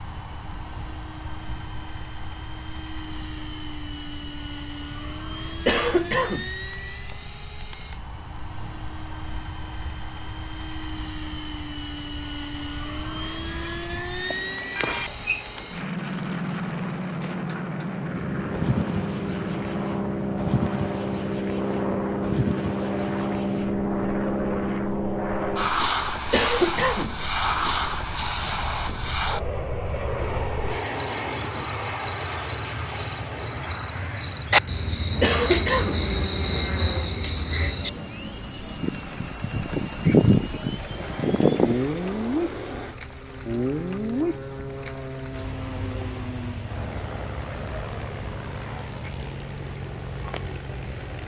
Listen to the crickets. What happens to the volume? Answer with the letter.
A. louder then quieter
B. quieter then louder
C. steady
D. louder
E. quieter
D.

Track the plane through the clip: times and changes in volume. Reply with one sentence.
You can hear the plane from 0.0 to 51.2 s, getting louder then quieter.